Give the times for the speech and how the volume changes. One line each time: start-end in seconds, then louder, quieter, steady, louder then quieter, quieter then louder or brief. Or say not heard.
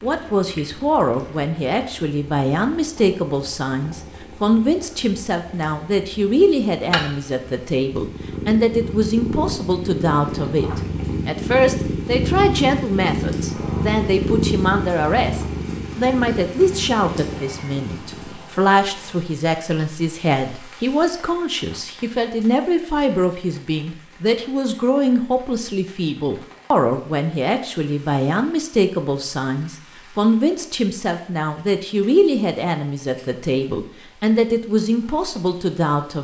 0.0-36.1 steady.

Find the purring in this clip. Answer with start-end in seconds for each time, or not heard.
0.0-18.4.